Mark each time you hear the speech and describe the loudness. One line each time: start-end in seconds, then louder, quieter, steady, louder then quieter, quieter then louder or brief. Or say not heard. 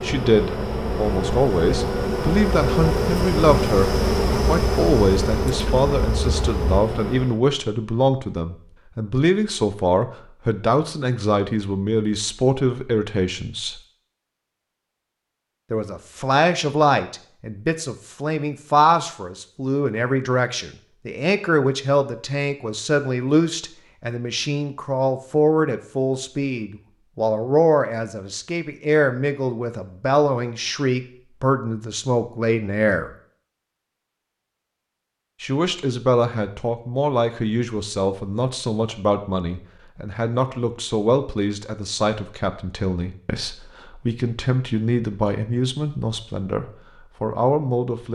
0.0-13.8 steady
15.7-33.1 steady
35.4-48.1 steady.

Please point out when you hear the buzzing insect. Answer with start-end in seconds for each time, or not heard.
0.0-7.4.